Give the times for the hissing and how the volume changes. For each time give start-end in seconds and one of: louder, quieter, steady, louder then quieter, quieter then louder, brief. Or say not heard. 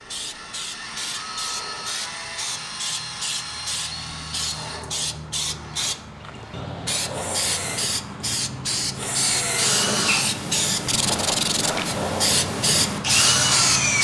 0.0-13.9 louder.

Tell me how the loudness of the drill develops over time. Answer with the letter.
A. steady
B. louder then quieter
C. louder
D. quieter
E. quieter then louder
C.